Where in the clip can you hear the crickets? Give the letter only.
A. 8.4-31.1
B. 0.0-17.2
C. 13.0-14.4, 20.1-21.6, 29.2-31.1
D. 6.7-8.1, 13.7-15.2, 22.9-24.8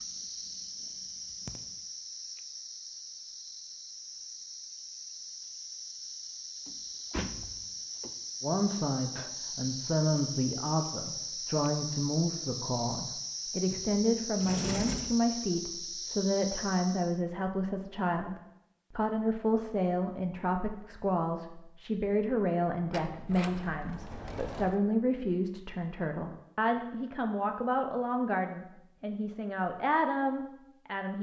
B.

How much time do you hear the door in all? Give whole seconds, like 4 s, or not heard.
5 s.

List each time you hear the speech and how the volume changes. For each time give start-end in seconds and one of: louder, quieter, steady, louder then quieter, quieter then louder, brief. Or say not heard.
8.4-31.1 steady.